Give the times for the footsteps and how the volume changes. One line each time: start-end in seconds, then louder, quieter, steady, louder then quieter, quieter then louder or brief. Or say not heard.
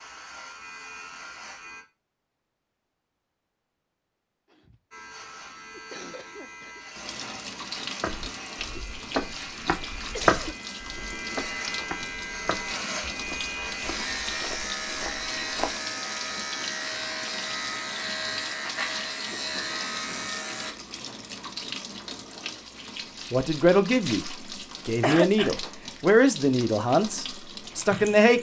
8.0-15.8 louder then quieter.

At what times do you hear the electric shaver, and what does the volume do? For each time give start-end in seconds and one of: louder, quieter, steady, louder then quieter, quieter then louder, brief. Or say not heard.
0.0-1.9 brief
4.9-20.8 louder.